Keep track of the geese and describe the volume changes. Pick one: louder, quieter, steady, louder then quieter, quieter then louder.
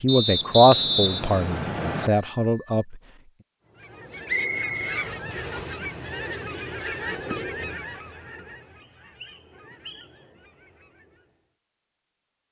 quieter.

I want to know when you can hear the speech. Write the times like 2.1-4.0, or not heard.
0.0-3.0.